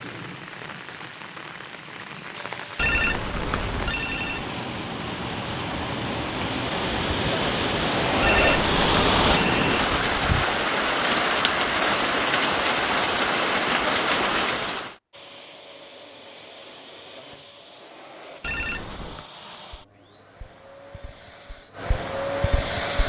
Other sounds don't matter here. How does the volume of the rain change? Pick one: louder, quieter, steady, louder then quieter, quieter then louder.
louder.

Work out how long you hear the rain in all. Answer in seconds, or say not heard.
15 s.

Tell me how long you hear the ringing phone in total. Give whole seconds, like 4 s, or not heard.
4 s.